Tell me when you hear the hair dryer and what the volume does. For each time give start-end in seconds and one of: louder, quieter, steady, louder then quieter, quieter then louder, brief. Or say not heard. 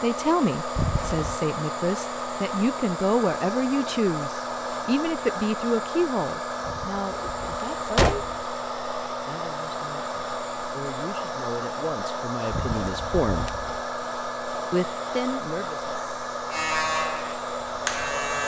0.0-18.4 steady.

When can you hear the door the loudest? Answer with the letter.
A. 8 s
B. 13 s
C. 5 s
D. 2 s
A.